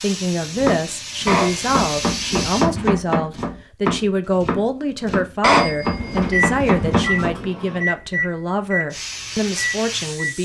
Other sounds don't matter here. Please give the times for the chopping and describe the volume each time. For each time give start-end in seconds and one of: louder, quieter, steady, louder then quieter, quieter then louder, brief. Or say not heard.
0.5-7.5 steady.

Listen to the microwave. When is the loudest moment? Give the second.
7 s.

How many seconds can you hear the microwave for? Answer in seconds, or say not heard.
4 s.